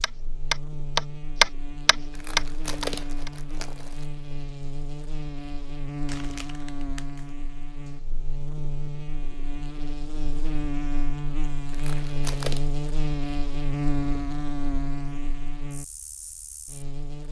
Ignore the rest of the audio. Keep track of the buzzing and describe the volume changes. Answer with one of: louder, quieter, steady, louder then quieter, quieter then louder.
louder.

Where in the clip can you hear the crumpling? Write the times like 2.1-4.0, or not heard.
2.1-4.0, 6.0-7.2, 11.7-12.7.